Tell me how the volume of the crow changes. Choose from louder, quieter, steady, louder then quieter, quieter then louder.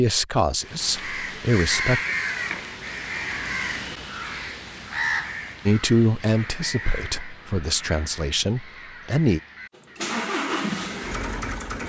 quieter.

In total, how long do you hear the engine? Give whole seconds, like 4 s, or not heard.
2 s.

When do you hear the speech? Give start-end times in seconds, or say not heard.
0.0-2.0, 5.7-9.4.